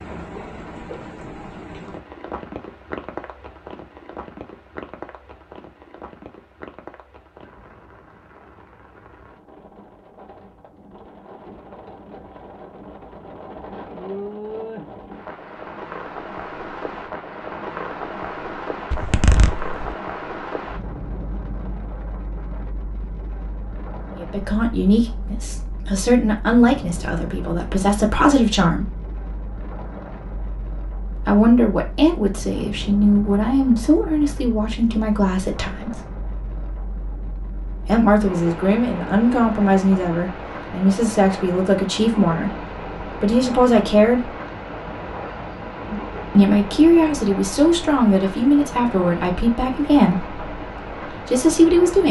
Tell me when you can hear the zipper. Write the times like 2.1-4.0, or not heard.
18.9-19.9.